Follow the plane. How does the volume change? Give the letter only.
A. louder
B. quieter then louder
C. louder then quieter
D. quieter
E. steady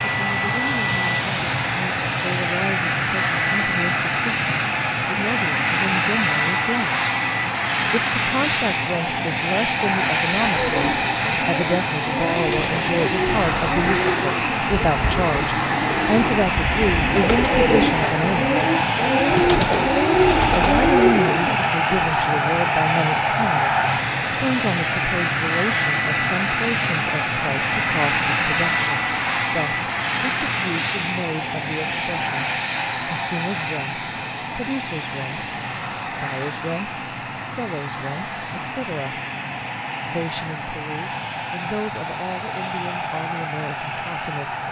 D.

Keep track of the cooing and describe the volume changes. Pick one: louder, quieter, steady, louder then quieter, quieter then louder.
louder.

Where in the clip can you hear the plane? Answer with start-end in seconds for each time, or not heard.
0.0-44.6.